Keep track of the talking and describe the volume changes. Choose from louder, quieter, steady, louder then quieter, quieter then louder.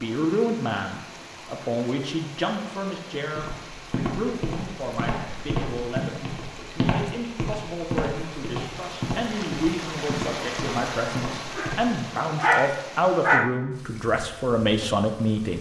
quieter then louder.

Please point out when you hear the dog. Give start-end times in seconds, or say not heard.
11.6-13.6.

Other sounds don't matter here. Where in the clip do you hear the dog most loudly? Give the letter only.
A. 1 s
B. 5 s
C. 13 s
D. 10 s
C.